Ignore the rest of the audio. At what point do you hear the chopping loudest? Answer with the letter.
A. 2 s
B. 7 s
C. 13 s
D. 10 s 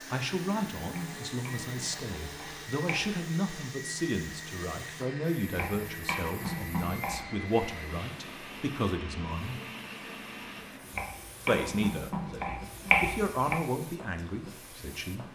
C.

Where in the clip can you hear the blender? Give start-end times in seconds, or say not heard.
0.0-10.7.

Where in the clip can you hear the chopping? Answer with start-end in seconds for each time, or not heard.
0.9-3.2, 5.5-7.2, 10.9-13.6.